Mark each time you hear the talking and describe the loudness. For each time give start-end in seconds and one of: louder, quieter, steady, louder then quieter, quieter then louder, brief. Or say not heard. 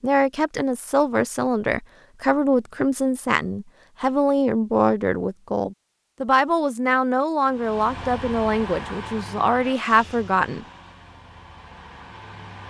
0.0-10.7 steady.